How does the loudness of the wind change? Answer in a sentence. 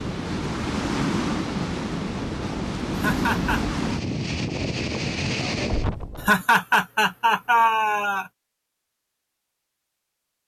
The loudness of the wind stays about the same.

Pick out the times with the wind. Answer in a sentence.
The wind can be heard from 0.0 to 6.4 s.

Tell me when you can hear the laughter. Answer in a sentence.
You can hear the laughter from 3.0 to 3.6 s and from 6.2 to 8.2 s.